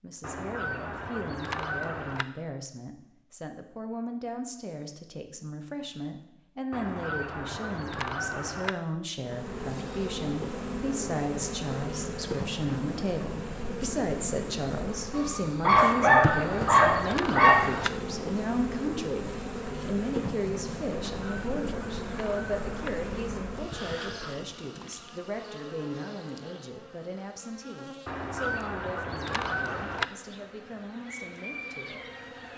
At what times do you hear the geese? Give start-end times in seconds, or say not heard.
0.2-2.2, 6.7-8.8, 15.9-17.9, 20.9-22.9, 28.1-30.1.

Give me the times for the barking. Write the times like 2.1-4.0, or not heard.
15.1-17.8.